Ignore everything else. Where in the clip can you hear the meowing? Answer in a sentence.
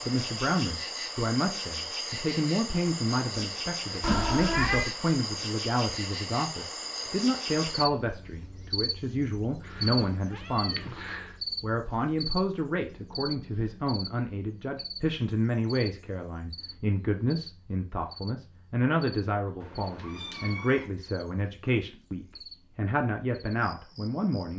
The meowing can be heard from 4.0 to 4.8 s, from 9.7 to 11.3 s and from 19.6 to 20.9 s.